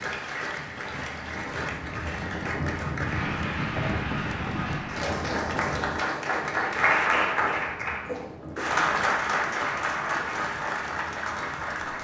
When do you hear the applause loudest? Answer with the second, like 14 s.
7 s.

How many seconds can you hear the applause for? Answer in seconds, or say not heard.
12 s.